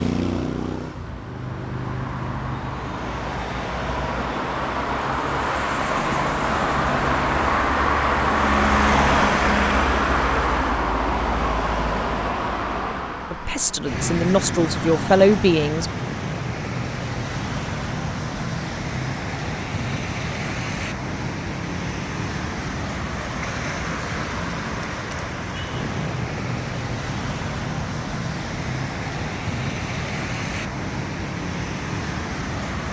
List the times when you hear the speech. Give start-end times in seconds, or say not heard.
13.3-15.9.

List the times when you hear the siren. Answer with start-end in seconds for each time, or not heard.
not heard.